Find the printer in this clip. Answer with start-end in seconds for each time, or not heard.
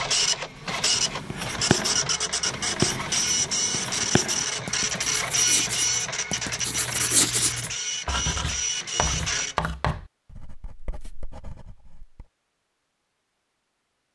0.0-9.6.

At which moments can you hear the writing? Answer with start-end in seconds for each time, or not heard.
0.7-12.2.